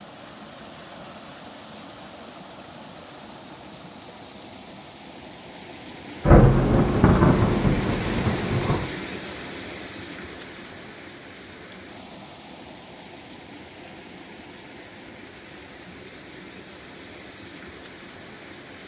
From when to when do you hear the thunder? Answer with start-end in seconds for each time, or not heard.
6.2-8.8.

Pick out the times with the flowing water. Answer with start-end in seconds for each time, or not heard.
0.0-18.8.